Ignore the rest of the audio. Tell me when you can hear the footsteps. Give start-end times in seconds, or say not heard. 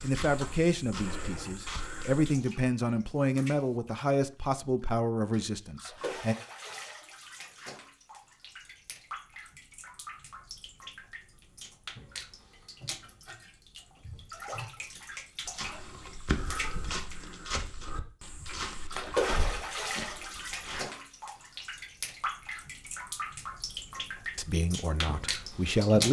0.0-2.4, 15.4-20.8.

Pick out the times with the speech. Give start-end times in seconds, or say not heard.
0.0-6.3, 24.4-26.0.